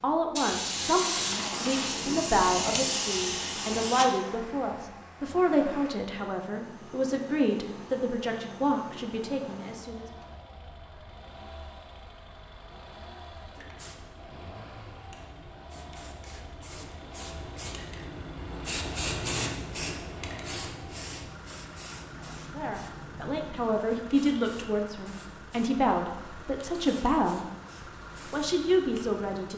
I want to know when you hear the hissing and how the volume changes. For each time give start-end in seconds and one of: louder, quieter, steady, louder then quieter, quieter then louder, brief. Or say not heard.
0.0-4.0 steady
13.6-29.5 louder then quieter.